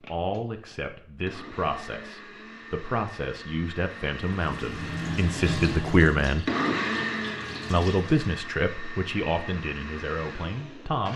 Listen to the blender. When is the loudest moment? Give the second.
7 s.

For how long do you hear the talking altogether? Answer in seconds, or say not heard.
10 s.